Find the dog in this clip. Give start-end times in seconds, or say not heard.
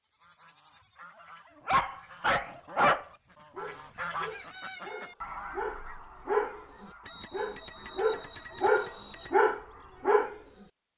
1.6-10.4.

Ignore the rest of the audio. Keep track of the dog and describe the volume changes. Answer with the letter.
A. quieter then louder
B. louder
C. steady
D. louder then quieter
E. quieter
A.